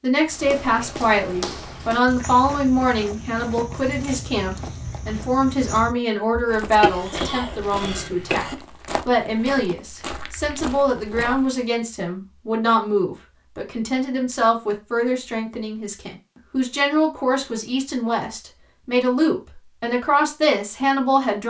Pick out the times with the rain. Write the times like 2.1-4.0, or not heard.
not heard.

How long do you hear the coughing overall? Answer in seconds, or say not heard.
2 s.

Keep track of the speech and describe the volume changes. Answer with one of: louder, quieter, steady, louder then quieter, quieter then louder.
steady.